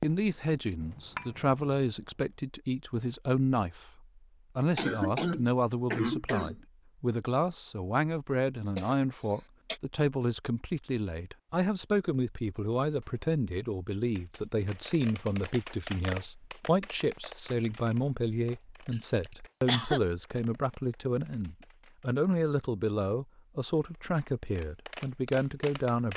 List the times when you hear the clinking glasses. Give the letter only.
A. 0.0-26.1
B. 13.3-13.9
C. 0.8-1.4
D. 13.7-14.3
C.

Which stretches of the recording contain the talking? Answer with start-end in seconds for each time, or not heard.
0.0-26.1.